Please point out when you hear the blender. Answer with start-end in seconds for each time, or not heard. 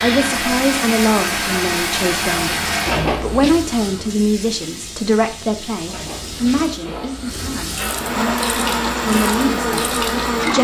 0.0-3.1, 7.9-10.5.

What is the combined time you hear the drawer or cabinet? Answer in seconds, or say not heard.
3 s.